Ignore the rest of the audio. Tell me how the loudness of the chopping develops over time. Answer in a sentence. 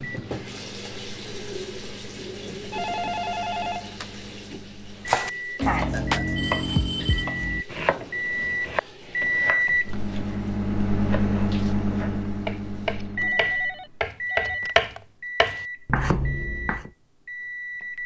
The loudness of the chopping goes down, then up.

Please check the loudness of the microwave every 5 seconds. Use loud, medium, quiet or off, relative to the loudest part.
quiet, loud, loud, medium.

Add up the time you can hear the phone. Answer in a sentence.
You can hear the phone for 4 seconds altogether.